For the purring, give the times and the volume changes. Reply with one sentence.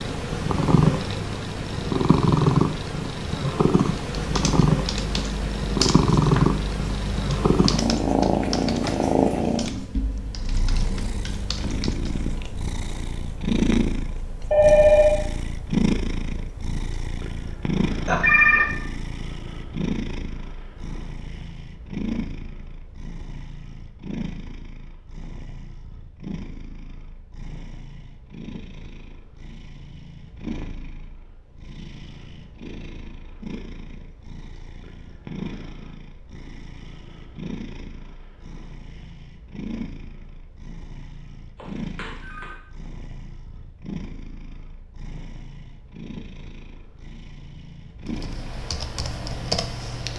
The purring can be heard from 0.0 to 50.1 s, getting quieter.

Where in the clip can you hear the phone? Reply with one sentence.
You can hear the phone from 14.5 to 15.2 s, from 18.1 to 18.9 s and from 41.5 to 42.6 s.